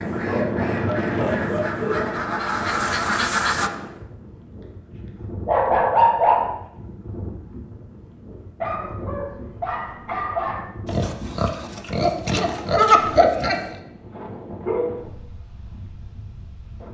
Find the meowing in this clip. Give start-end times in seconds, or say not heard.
not heard.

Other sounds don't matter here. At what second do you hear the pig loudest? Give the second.
13 s.